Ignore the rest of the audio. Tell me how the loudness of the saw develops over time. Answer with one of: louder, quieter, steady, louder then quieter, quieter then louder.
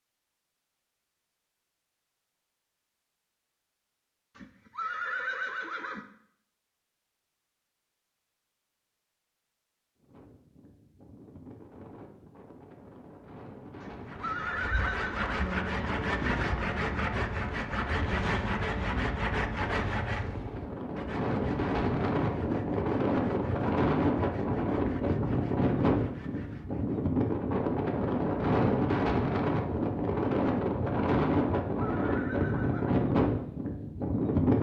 quieter.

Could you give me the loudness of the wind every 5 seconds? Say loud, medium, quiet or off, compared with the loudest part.
off, off, quiet, quiet, loud, loud, loud.